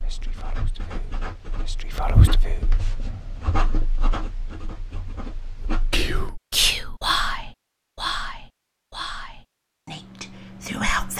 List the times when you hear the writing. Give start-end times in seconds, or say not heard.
0.0-6.1.